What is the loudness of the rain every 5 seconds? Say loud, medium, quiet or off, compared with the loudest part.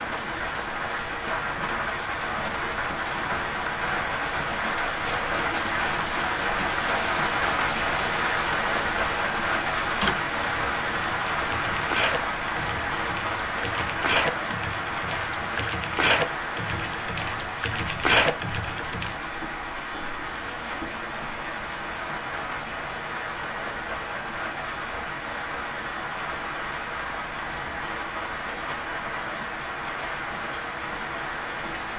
loud, loud, loud, medium, medium, medium, medium.